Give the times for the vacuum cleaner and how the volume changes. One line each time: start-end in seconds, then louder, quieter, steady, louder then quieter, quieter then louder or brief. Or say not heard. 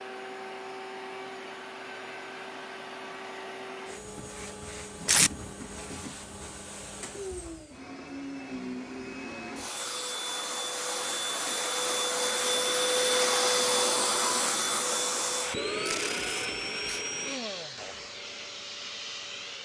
0.0-19.5 louder then quieter.